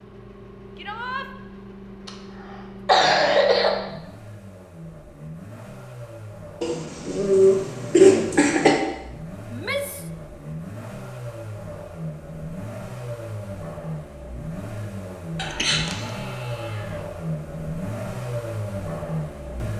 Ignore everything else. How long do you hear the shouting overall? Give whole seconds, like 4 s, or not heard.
3 s.